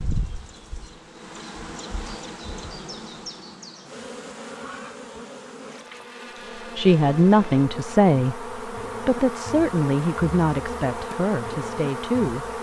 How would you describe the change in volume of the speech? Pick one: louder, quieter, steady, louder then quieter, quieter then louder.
quieter.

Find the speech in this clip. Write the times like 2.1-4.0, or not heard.
6.8-12.5.